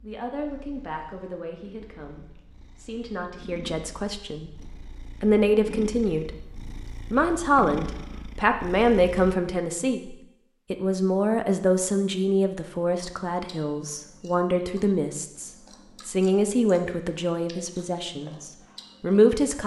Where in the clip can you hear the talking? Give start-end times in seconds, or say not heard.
0.0-19.6.